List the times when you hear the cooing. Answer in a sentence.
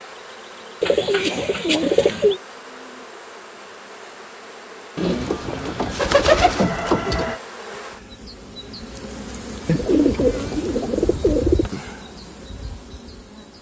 You can hear the cooing from 0.8 to 2.4 s, from 5.0 to 7.4 s and from 9.7 to 11.7 s.